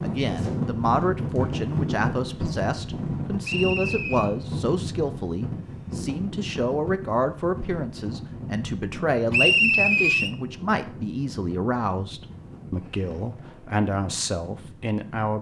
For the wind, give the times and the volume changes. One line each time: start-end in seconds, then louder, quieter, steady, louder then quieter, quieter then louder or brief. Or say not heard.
0.0-15.3 quieter.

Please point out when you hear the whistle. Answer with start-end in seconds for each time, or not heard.
3.4-4.3, 9.3-10.3.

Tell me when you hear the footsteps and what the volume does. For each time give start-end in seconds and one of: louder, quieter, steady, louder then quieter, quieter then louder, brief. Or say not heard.
not heard.